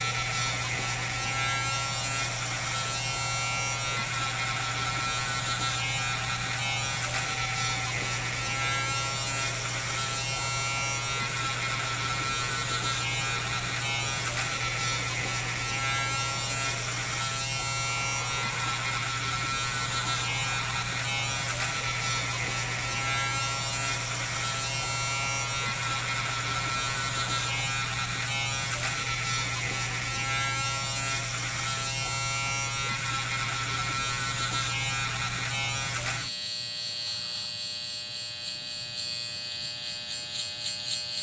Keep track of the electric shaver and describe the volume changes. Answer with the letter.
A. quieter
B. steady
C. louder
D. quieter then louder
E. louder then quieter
B.